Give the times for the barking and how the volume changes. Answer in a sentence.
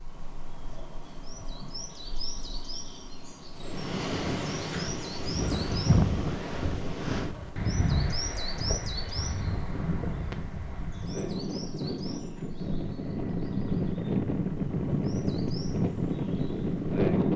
The barking can't be heard in this clip.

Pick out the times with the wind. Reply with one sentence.
The wind can be heard from 3.5 to 17.3 s.